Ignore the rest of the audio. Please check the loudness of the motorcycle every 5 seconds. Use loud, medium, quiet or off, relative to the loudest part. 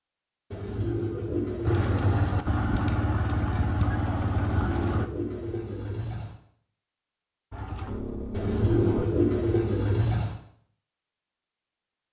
loud, medium, off.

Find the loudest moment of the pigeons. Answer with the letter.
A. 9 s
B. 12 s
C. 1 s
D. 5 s
A.